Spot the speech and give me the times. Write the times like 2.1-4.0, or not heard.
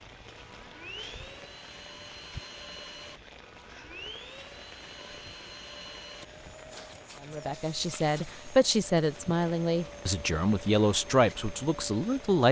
7.2-12.4.